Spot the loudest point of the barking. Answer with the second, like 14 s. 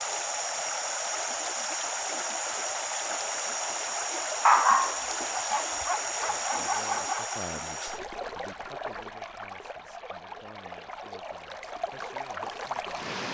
5 s.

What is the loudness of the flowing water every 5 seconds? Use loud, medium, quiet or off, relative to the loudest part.
loud, loud, medium.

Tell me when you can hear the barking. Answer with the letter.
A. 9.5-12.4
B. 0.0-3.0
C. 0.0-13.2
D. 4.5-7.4
D.